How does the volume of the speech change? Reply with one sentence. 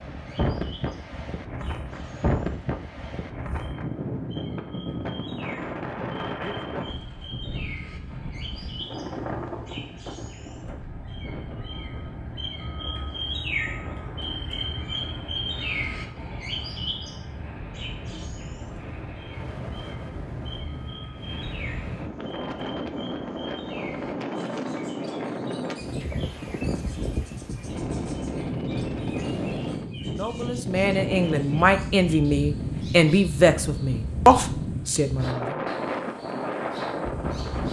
The volume of the speech goes up.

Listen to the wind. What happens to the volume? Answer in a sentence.
The volume of the wind goes down, then up.